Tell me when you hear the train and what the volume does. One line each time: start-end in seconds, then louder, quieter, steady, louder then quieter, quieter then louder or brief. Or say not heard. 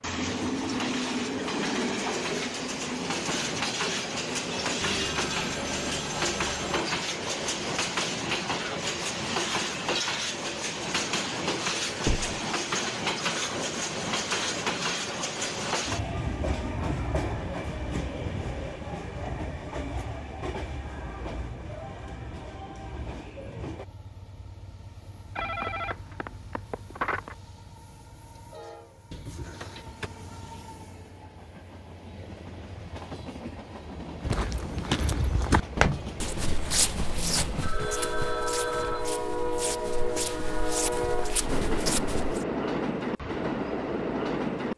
0.0-44.7 quieter then louder.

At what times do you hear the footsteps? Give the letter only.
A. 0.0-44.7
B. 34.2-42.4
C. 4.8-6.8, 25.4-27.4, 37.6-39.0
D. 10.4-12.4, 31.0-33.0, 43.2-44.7
B.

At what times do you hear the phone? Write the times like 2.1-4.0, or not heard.
4.8-6.8, 25.4-27.4, 37.6-39.0.